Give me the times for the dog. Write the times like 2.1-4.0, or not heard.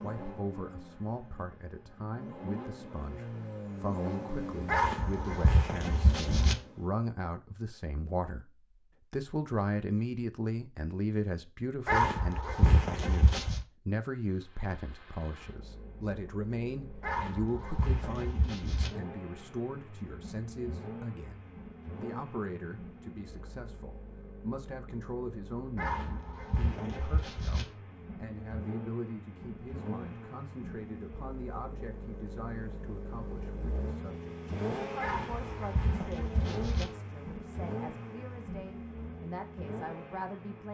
4.7-6.5, 11.8-13.6, 17.0-18.9, 25.8-27.6, 35.0-36.9.